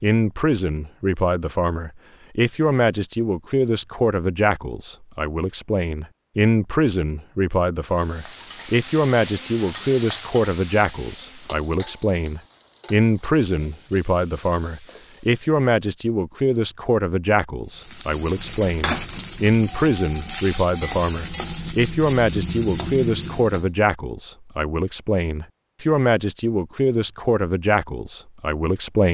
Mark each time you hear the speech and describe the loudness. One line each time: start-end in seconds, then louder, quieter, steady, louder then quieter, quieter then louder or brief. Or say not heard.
0.0-29.0 steady.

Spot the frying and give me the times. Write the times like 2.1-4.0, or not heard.
7.8-15.6, 17.7-23.7.